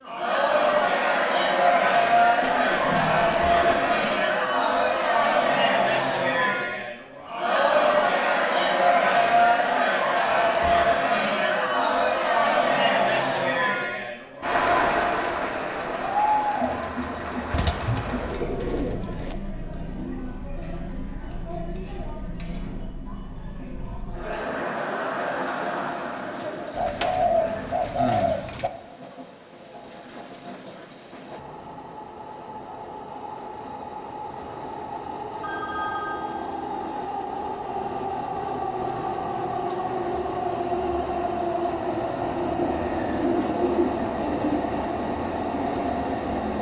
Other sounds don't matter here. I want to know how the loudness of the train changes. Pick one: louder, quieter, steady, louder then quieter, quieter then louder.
louder.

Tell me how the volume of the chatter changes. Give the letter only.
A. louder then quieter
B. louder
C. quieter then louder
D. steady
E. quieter
E.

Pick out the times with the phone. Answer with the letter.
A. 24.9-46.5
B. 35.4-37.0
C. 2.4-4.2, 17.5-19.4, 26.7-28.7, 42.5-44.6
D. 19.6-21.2
B.